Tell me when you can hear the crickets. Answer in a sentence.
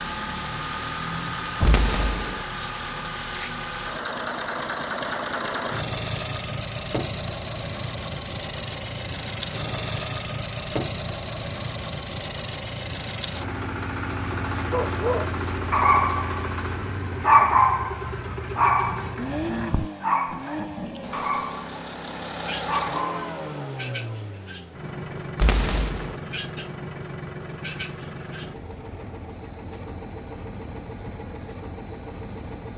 The crickets can be heard from 14.8 to 32.7 s.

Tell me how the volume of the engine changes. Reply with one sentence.
The volume of the engine goes down.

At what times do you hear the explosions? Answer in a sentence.
You can hear the explosions from 1.6 to 2.4 s and from 25.4 to 26.1 s.